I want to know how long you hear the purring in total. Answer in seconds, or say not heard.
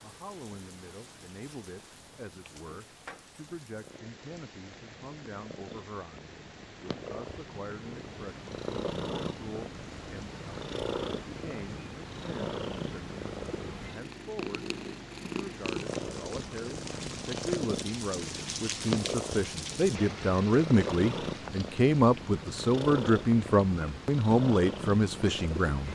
26 s.